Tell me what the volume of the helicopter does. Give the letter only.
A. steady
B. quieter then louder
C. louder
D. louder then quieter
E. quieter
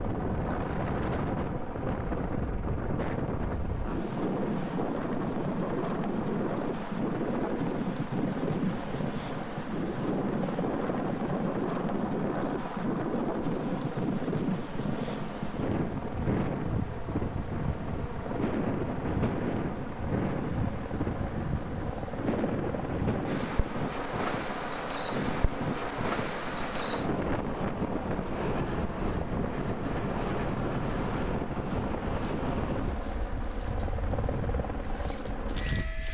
A.